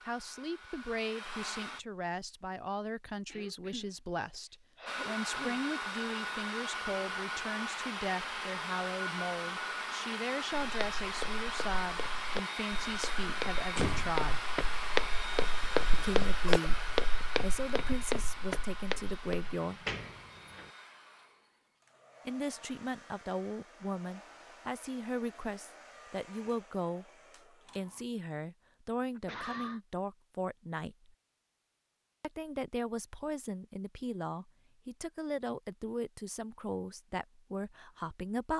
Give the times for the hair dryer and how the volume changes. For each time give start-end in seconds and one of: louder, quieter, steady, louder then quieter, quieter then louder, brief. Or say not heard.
0.0-1.8 brief
4.8-28.1 quieter.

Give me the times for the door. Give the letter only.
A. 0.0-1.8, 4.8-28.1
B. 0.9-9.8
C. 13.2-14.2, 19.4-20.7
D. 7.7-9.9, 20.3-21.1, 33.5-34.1
C.